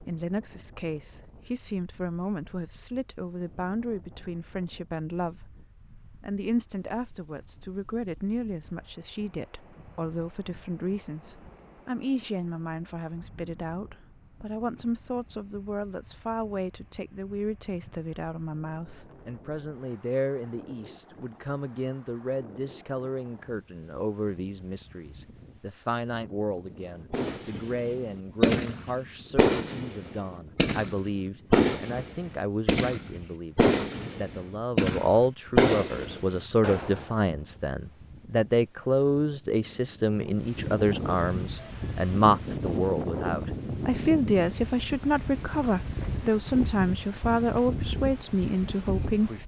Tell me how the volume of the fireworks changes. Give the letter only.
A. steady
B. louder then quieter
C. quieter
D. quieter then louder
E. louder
A.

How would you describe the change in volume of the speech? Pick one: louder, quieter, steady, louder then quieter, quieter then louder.
louder.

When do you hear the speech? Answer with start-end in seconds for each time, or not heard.
0.0-5.5, 6.2-49.3.